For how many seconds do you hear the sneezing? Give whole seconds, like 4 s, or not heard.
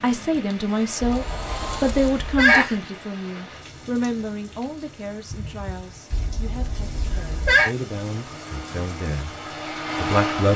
3 s.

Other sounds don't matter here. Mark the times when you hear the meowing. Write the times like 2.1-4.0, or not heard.
not heard.